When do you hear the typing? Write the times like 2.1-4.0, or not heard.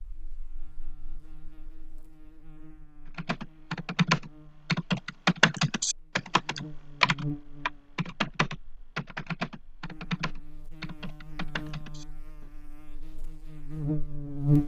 3.1-12.4.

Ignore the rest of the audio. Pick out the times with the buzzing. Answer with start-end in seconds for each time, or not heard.
0.0-14.6.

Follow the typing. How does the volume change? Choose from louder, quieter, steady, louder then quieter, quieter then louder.
quieter.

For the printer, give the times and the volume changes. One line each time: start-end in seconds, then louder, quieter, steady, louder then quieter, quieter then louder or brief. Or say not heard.
not heard.